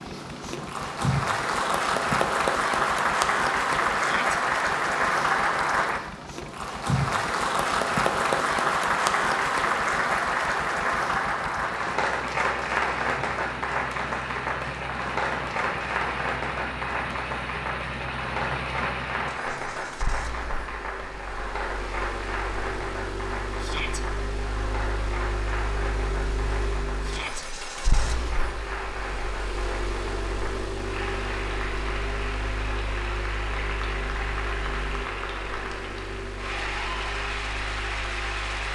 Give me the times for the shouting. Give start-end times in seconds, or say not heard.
4.0-4.4, 23.6-24.0, 27.0-27.4.